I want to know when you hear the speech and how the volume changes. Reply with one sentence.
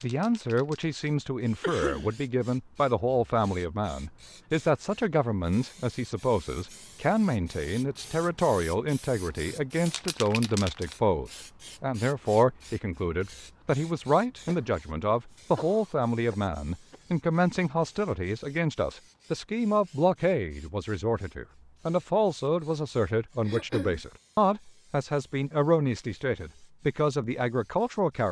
The speech can be heard from 0.0 to 28.2 s, at a steady volume.